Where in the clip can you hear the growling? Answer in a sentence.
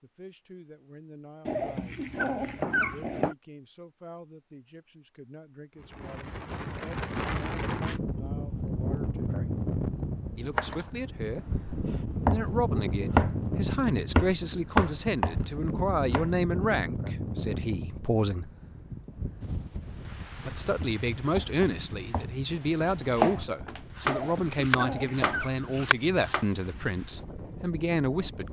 You can hear the growling from 1.4 to 3.4 s and from 24.1 to 25.5 s.